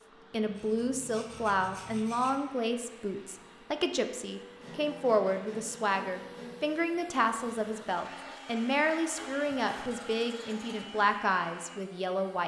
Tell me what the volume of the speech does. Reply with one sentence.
The volume of the speech stays about the same.